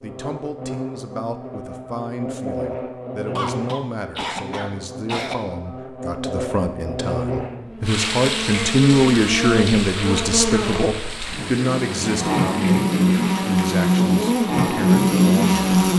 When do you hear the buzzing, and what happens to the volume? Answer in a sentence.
The buzzing can be heard from 0.0 to 15.9 s, getting louder.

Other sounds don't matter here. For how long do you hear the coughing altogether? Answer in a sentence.
You can hear the coughing for 2 seconds altogether.